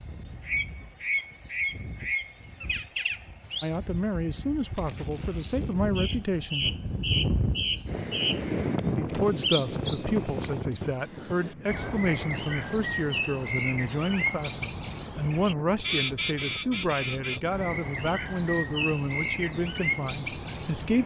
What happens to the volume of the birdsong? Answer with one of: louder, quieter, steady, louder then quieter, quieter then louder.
steady.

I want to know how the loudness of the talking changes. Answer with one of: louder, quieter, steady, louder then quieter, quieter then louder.
steady.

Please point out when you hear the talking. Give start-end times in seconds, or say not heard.
3.6-6.7, 8.9-21.0.